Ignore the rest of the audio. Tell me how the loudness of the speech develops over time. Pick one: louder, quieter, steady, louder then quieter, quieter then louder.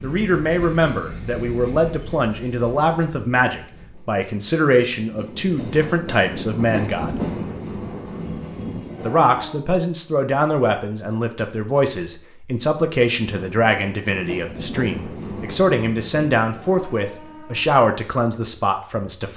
steady.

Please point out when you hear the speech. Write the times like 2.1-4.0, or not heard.
0.0-7.2, 9.0-19.3.